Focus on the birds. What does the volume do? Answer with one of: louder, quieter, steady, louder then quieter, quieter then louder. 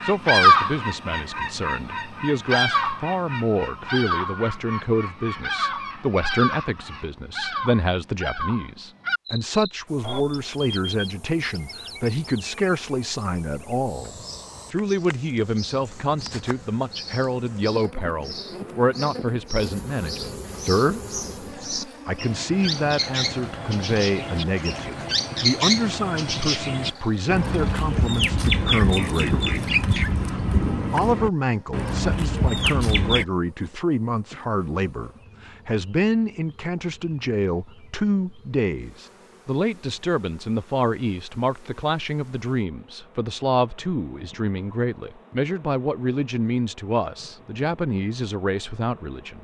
quieter then louder.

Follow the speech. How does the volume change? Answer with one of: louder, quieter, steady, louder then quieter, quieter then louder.
steady.